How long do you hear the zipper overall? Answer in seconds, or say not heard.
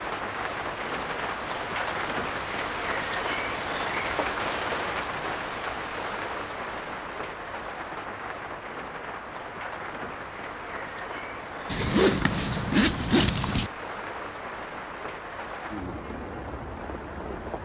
2 s.